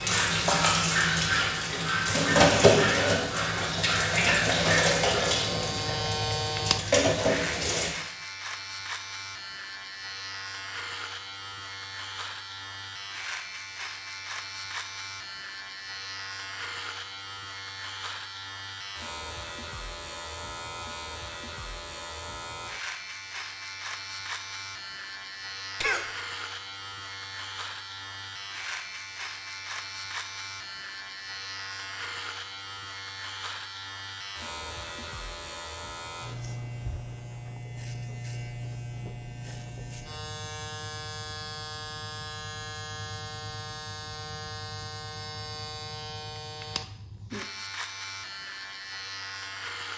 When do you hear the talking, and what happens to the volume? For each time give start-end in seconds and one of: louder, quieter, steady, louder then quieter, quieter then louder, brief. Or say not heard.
not heard.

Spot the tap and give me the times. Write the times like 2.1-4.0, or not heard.
0.0-7.9.